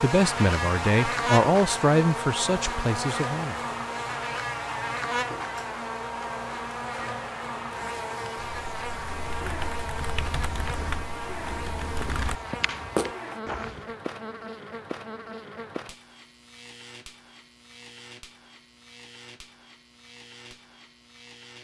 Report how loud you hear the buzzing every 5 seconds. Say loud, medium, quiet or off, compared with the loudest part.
loud, loud, medium, quiet, quiet.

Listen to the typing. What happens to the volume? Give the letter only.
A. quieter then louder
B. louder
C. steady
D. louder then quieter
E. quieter
B.